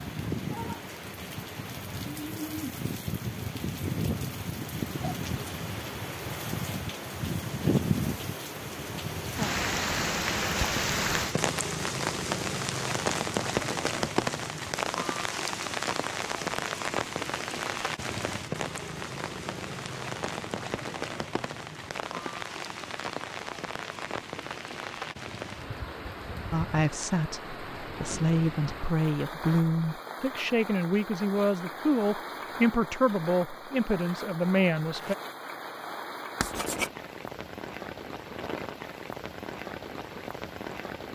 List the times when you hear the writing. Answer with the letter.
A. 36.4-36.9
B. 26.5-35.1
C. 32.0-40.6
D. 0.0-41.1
A.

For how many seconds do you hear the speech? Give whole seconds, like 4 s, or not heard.
9 s.